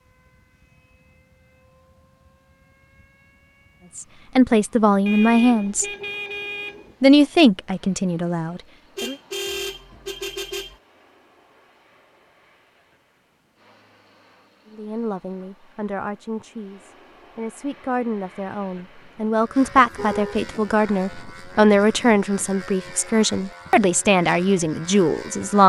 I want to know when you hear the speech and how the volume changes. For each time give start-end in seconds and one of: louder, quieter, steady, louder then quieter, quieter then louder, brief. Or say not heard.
4.0-5.8 brief
7.0-9.2 brief
14.7-25.6 louder.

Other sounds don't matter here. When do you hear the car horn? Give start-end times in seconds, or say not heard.
5.0-7.0, 8.9-10.8, 19.8-20.4.